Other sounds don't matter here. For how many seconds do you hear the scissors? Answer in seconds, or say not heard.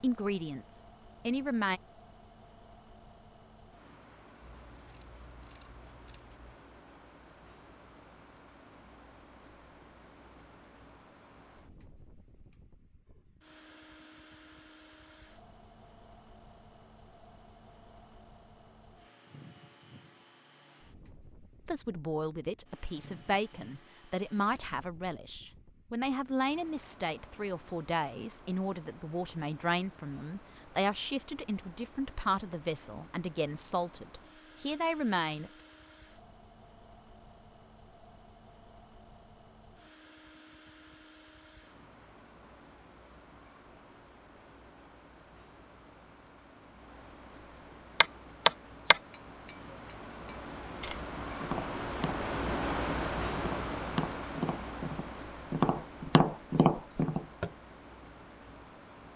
2 s.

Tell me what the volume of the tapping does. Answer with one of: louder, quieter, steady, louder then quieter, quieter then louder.
quieter then louder.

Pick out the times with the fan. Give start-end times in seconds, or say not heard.
0.0-59.1.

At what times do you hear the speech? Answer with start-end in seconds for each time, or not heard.
0.0-1.8, 21.6-35.6.